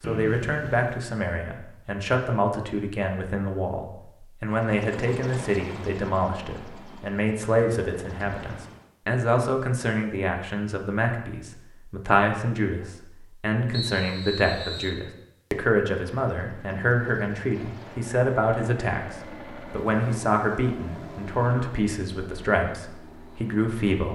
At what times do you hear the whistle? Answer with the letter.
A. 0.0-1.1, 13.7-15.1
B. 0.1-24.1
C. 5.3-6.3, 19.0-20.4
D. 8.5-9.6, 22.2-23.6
A.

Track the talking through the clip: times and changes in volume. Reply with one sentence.
The talking can be heard from 0.1 to 24.1 s, at a steady volume.